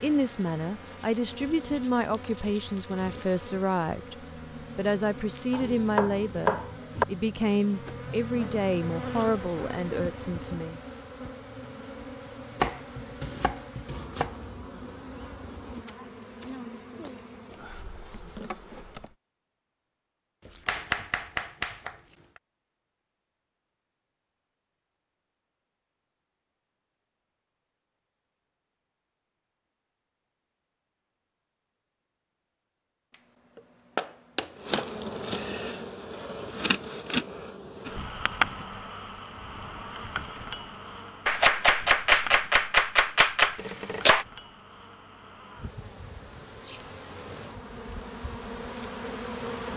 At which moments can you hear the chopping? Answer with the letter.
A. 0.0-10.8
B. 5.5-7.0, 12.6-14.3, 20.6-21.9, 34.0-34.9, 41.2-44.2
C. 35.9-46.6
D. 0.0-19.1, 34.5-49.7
B.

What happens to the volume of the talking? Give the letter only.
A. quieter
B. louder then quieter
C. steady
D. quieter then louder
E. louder
C.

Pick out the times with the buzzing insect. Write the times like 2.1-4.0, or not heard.
0.0-19.1, 34.5-49.7.